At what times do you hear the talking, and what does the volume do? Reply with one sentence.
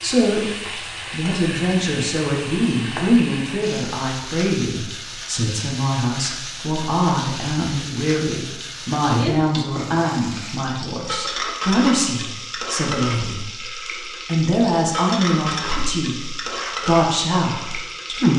The talking can be heard from 0.0 to 18.3 s, at a steady volume.